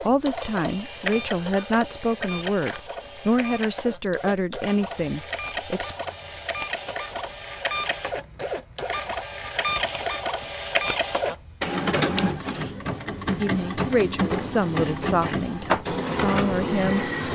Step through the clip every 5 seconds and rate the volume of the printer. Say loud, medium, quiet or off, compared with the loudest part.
medium, medium, loud, loud.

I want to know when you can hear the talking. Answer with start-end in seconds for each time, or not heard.
0.0-6.0, 13.3-17.3.